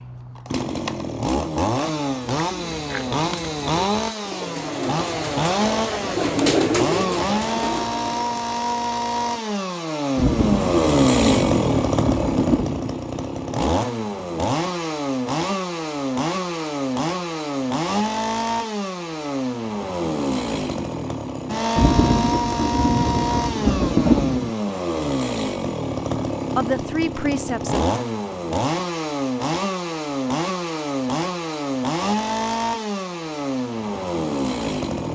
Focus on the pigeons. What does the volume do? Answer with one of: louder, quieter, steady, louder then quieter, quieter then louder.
louder then quieter.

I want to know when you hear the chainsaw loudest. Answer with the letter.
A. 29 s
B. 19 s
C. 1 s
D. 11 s
D.